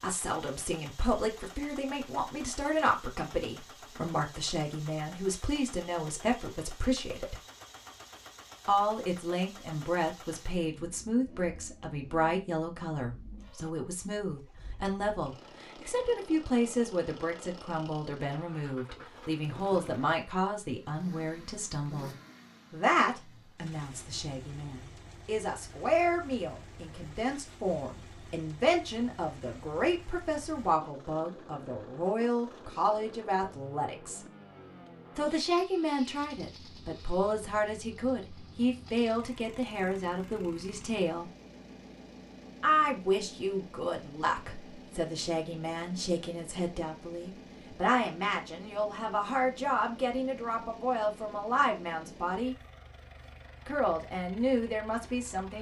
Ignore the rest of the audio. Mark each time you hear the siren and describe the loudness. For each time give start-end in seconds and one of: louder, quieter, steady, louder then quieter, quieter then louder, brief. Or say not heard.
not heard.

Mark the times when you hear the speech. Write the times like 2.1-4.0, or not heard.
0.0-7.3, 8.7-34.2, 35.1-41.3, 42.6-52.5, 53.6-55.5.